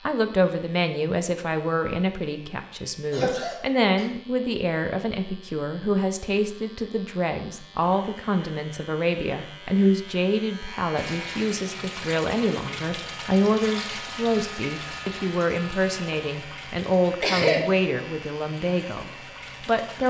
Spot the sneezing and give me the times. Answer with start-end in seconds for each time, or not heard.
3.1-4.1, 17.2-17.6.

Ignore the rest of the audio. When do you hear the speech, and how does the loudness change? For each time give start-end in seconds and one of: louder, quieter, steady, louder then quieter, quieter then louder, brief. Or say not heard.
0.1-20.0 steady.